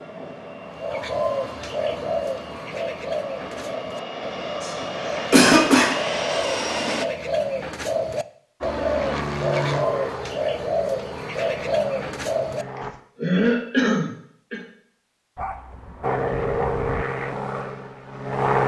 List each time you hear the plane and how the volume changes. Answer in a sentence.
You can hear the plane from 0.0 to 7.0 s, getting louder; from 8.6 to 12.9 s, getting quieter; and briefly from 16.0 to 18.6 s.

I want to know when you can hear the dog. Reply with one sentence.
You can hear the dog from 15.3 to 17.1 s.